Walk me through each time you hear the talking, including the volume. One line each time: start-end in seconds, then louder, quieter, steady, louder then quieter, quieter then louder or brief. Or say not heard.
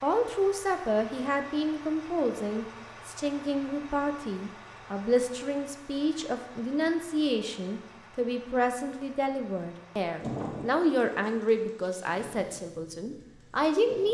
0.0-14.0 steady.